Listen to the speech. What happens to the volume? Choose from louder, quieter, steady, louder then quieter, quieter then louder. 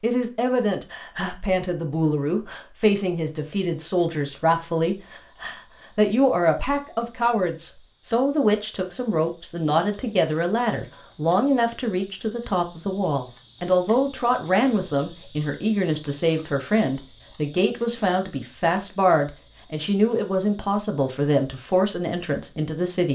steady.